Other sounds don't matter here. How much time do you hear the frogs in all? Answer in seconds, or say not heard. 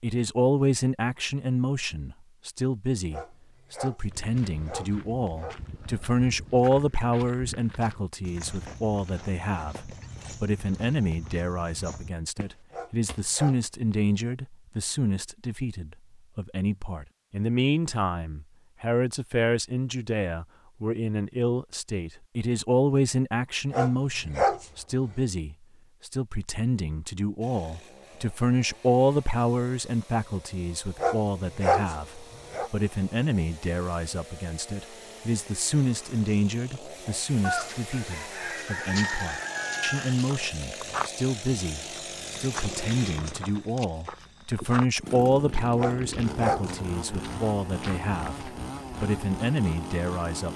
not heard.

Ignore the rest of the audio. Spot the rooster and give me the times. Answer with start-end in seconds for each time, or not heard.
37.4-40.4.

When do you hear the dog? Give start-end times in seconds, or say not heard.
3.1-5.6, 12.7-13.7, 23.7-24.6, 30.9-32.7, 45.8-46.7.